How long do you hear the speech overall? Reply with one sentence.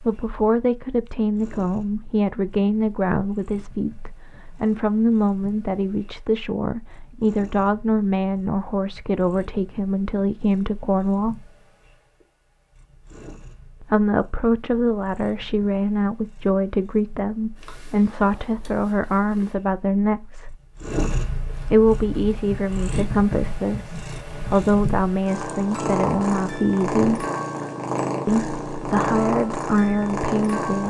The speech can be heard for 26 seconds in total.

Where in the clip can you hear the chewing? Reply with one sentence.
The chewing can't be heard in this clip.